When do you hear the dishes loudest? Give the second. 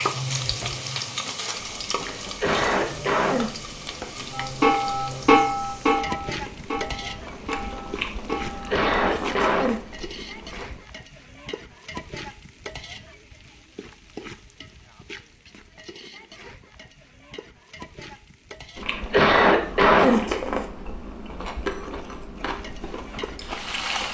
5 s.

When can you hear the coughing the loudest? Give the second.
20 s.